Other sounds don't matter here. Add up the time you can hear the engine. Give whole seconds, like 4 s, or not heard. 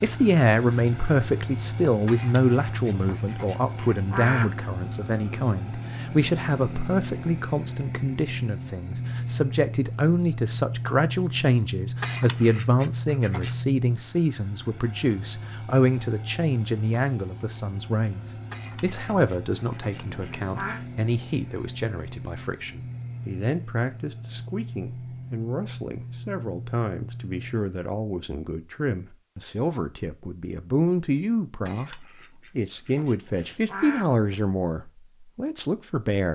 28 s.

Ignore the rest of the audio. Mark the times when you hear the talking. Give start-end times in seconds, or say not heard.
0.0-36.2.